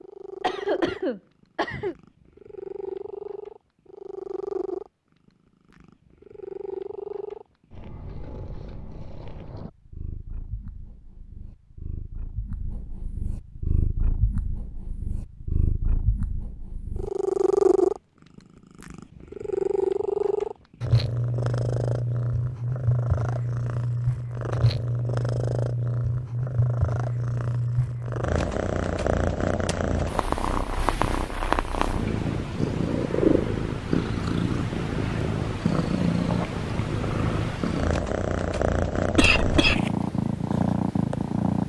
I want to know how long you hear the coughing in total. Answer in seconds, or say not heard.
2 s.